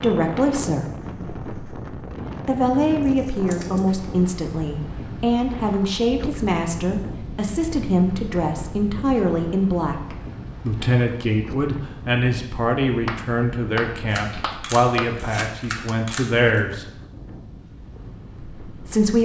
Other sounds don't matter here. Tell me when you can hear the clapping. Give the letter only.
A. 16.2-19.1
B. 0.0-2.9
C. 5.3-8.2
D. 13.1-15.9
D.